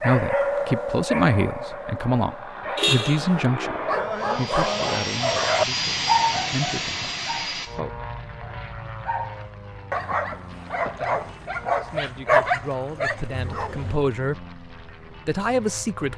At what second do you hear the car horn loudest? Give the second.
3 s.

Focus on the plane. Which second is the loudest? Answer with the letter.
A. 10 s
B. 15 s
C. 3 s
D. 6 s
D.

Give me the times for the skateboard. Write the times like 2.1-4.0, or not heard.
not heard.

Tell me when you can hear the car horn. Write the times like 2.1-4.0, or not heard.
2.8-3.2, 13.3-14.1.